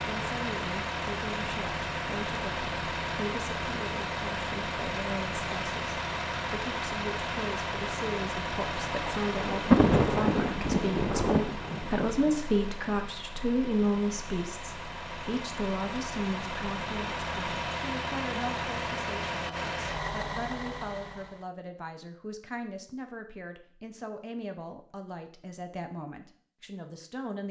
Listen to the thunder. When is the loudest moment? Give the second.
10 s.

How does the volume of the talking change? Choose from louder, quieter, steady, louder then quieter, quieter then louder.
louder then quieter.